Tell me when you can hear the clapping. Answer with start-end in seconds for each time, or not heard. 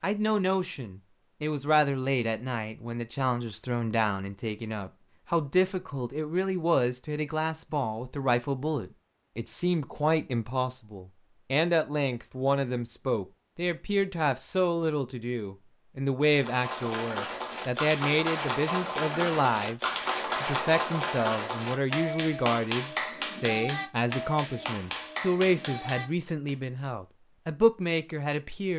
16.2-26.6.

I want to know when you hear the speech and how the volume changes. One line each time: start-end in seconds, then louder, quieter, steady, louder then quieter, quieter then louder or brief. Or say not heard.
0.0-28.7 steady.